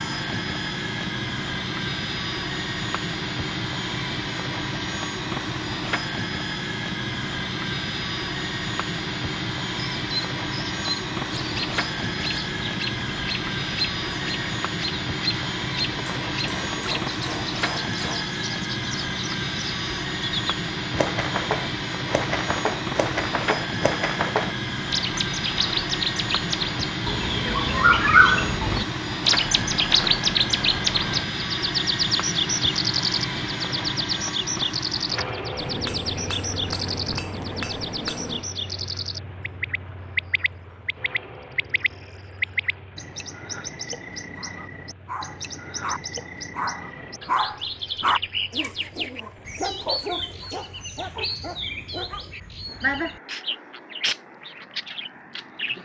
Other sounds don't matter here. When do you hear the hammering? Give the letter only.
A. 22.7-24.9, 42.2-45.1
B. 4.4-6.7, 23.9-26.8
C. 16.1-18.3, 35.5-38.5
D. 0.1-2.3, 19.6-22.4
C.